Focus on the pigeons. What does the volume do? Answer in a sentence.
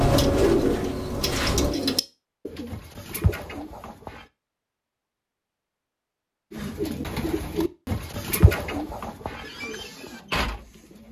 The loudness of the pigeons goes down.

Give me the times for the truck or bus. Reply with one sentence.
The truck or bus can be heard from 0.0 to 1.8 s.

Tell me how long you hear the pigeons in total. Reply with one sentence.
You can hear the pigeons for 9 seconds altogether.